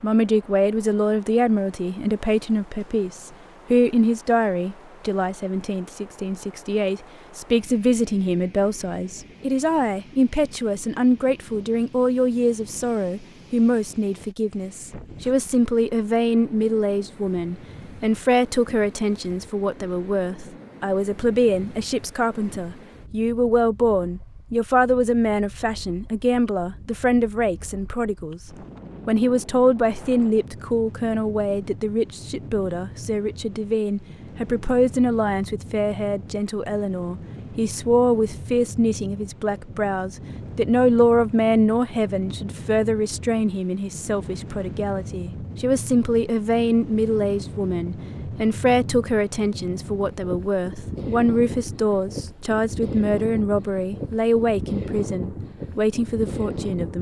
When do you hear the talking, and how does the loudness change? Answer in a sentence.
The talking can be heard from 0.0 to 28.4 s, at a steady volume; and from 29.1 to 56.9 s, at a steady volume.